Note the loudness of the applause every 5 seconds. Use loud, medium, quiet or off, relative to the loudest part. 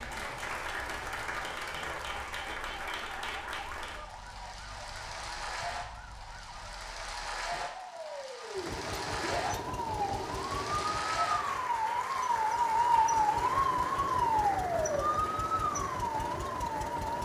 loud, loud, loud, medium.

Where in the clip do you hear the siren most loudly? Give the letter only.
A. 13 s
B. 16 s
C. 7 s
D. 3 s
A.